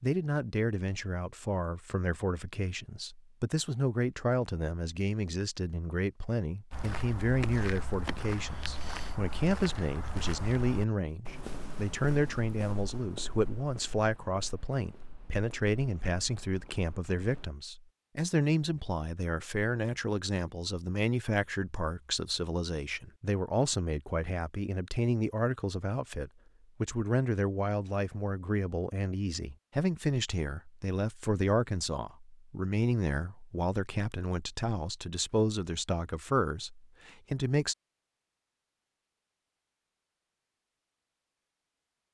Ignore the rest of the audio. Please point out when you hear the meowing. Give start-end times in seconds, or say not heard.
not heard.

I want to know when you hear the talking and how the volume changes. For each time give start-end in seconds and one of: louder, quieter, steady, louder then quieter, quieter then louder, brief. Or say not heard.
0.0-37.8 steady.